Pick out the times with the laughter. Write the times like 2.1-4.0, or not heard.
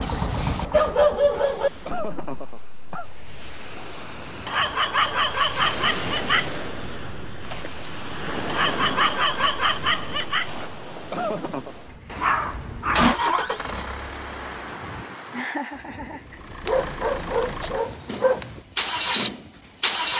1.3-3.0, 10.6-11.8, 15.3-16.4.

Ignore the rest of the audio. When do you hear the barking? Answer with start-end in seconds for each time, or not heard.
0.0-1.7, 4.5-6.5, 8.4-10.5, 12.2-13.6, 16.6-18.6.